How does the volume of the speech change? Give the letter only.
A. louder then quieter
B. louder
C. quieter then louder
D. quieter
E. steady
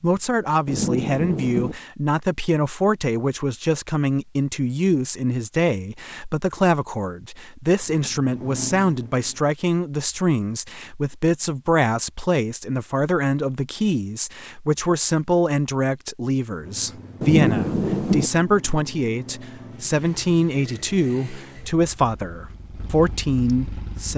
E.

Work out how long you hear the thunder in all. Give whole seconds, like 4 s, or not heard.
2 s.